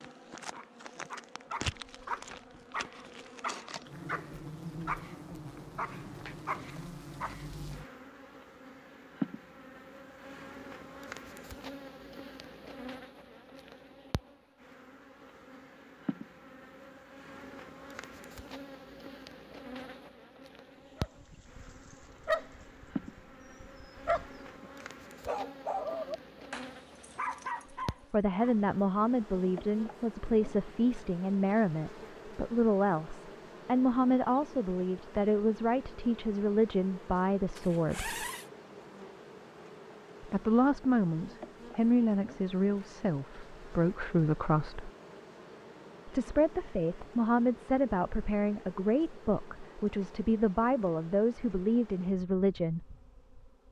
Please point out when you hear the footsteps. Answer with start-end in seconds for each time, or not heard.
not heard.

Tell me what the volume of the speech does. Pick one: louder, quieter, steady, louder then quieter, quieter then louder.
steady.